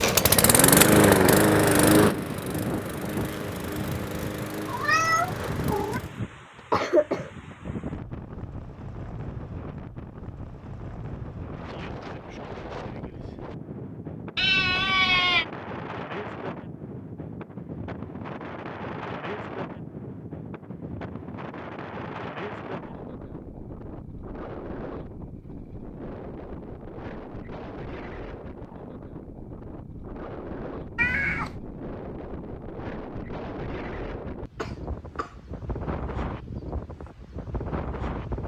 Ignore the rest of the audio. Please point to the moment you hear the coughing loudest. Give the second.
7 s.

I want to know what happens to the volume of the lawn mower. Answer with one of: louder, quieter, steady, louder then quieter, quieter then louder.
quieter.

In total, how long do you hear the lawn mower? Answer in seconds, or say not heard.
6 s.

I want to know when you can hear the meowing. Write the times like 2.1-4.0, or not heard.
4.7-6.0, 14.3-15.4, 30.9-31.6.